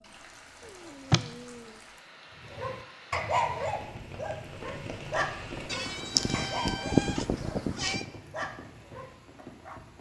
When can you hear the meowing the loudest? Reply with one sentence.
The volume of the meowing peaks at 7 seconds.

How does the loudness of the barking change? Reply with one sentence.
The volume of the barking goes down.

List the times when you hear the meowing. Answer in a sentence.
The meowing can be heard from 0.7 to 1.7 s and from 5.7 to 8.1 s.